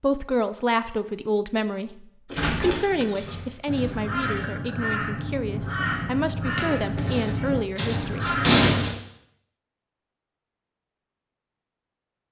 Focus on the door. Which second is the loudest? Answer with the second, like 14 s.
9 s.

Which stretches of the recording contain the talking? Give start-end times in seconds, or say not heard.
0.0-8.3.